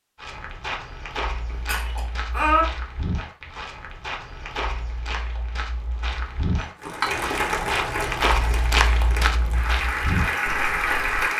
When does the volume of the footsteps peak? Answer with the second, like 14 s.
9 s.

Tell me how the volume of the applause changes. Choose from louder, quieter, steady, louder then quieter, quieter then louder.
quieter then louder.